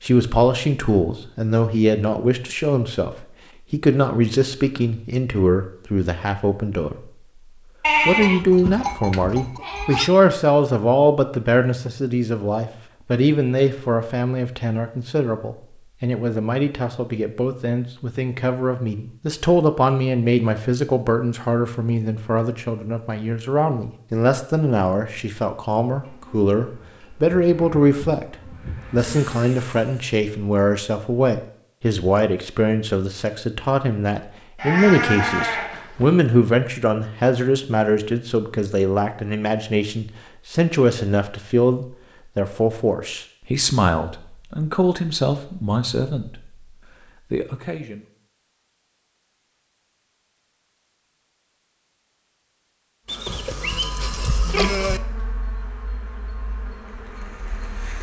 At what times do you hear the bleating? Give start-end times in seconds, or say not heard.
7.8-10.1, 34.5-36.1, 53.0-55.0.